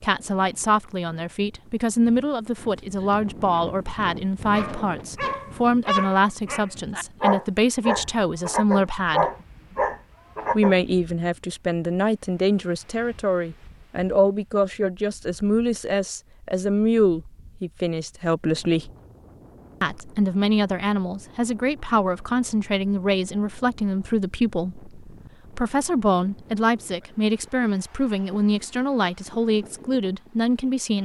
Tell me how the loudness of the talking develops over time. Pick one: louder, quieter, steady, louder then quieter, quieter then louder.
steady.